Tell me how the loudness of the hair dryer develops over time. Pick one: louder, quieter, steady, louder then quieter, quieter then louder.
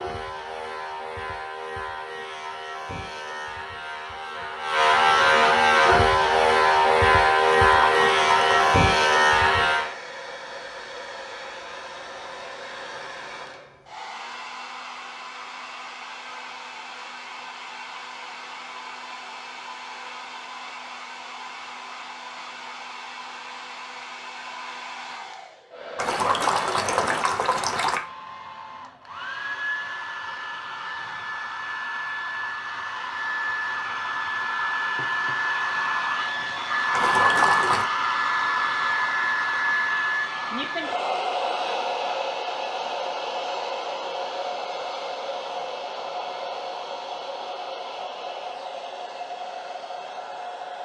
louder then quieter.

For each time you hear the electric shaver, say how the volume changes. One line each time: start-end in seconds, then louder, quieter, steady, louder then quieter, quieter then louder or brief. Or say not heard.
0.0-9.9 louder.